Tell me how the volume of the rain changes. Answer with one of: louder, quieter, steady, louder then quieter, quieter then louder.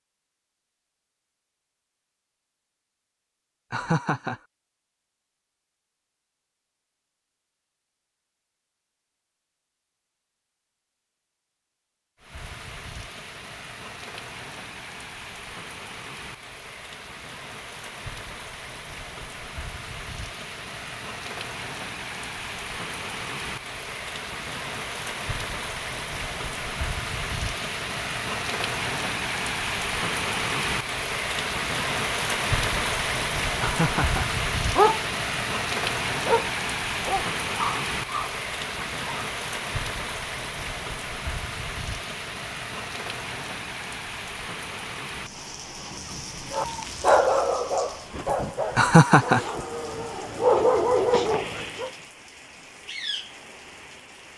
louder then quieter.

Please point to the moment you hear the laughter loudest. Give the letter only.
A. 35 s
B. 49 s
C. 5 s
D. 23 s
B.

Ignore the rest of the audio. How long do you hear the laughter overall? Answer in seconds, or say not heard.
2 s.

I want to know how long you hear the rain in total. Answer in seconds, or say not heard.
42 s.